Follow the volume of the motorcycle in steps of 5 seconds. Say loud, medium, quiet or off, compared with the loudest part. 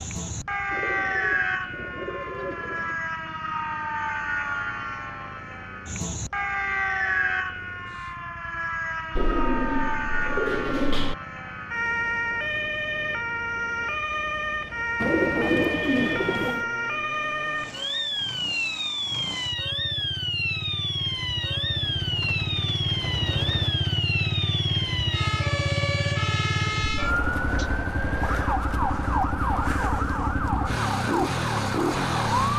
quiet, quiet, quiet, quiet, loud, loud, loud.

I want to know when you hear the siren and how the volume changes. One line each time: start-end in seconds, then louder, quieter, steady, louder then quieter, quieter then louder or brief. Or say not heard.
0.0-32.5 steady.